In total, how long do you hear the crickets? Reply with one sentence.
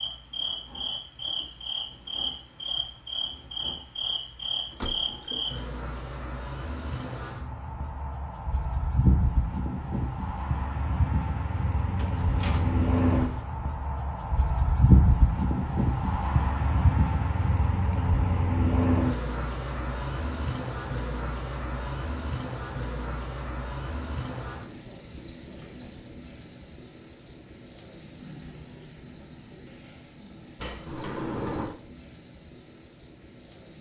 You can hear the crickets for 34 seconds altogether.